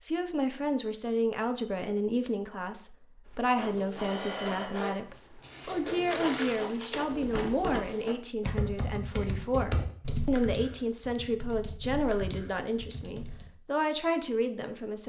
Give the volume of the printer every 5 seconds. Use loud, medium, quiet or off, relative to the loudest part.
loud, loud, off.